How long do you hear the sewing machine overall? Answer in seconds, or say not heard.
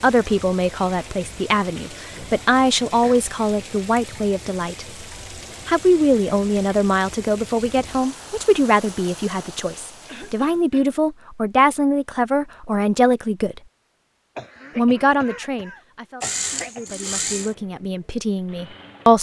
3 s.